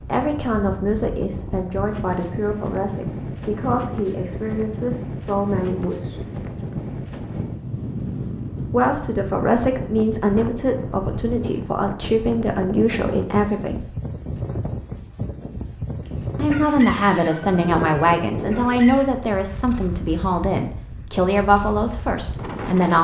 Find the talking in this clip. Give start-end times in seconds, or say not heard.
0.1-6.2, 8.7-13.9, 16.4-22.9.